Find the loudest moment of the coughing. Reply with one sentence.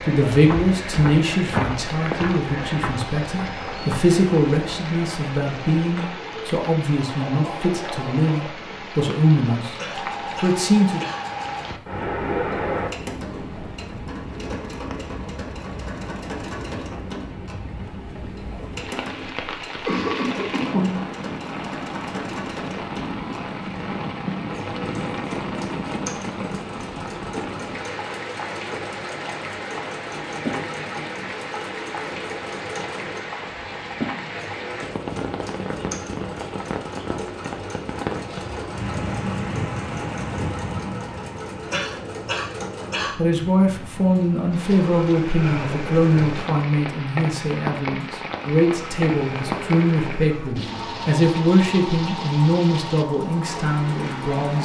The volume of the coughing peaks at 21 seconds.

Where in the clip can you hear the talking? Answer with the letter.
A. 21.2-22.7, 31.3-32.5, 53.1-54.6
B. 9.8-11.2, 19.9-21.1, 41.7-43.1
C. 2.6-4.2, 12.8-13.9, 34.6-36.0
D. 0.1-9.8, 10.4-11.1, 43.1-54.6
D.